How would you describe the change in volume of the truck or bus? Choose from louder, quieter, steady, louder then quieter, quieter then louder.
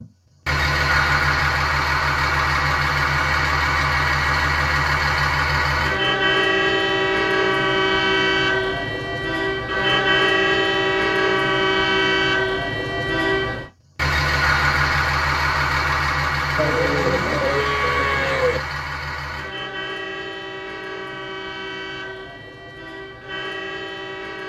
quieter.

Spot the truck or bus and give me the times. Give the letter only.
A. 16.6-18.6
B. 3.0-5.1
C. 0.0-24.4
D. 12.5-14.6
C.